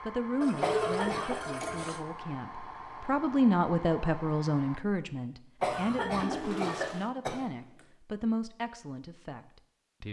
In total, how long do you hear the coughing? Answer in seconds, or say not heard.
3 s.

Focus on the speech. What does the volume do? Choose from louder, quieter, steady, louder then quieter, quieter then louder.
louder then quieter.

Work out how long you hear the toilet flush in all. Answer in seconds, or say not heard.
3 s.